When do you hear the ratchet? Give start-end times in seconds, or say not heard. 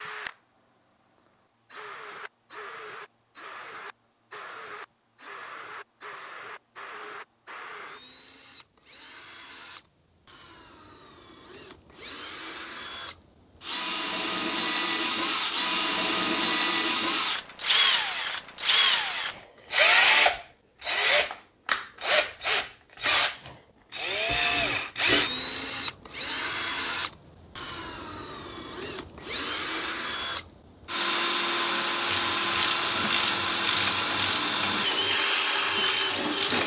32.0-36.6.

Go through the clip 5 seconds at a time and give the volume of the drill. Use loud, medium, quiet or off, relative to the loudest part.
quiet, quiet, medium, loud, loud, loud, loud, loud.